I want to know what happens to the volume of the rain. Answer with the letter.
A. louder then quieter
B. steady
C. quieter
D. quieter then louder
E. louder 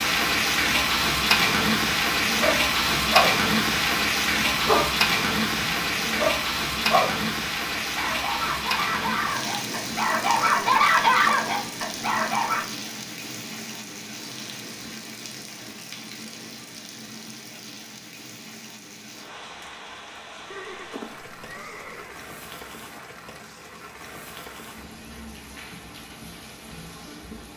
C.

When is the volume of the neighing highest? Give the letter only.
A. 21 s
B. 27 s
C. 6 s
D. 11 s
A.